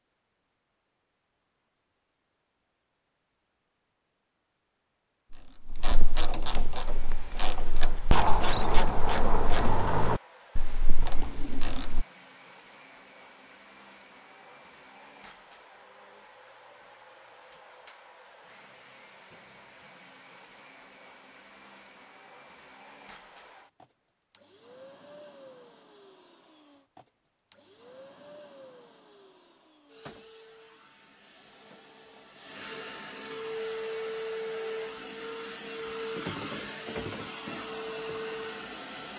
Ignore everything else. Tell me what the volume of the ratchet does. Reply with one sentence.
The volume of the ratchet goes up, then down.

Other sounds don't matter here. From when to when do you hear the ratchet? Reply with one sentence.
The ratchet can be heard from 5.3 to 12.1 s.